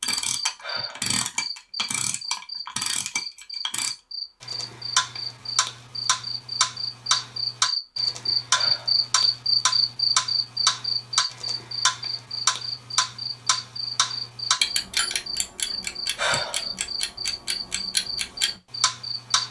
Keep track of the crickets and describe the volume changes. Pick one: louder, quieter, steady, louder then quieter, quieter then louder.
louder then quieter.